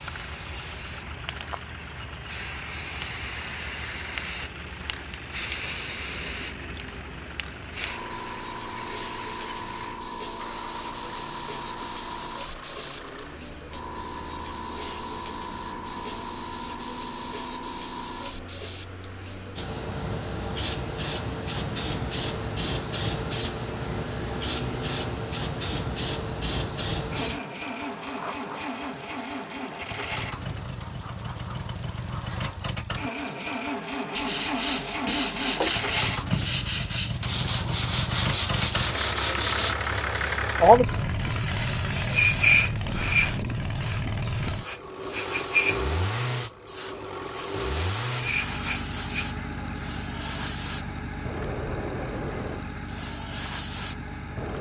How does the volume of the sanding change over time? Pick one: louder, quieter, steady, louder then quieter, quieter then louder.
steady.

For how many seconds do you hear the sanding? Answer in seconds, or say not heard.
6 s.